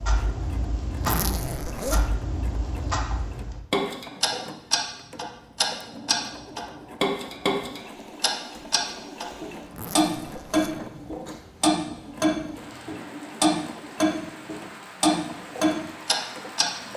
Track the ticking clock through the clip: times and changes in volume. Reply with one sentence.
The ticking clock can be heard from 0.0 to 16.6 s, getting louder.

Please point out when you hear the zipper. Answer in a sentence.
The zipper can be heard from 1.0 to 2.2 s and from 9.7 to 10.7 s.